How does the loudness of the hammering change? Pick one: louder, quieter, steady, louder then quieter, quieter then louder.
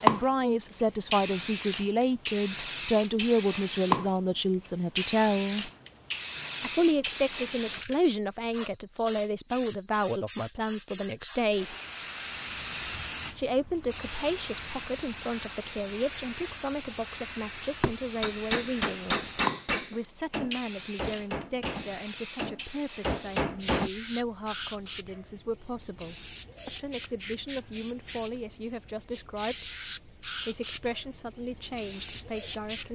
quieter then louder.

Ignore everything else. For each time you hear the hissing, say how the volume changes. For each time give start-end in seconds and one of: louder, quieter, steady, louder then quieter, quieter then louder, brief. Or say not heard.
0.0-32.9 quieter.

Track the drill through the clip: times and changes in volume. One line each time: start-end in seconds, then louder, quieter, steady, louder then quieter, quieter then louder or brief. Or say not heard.
not heard.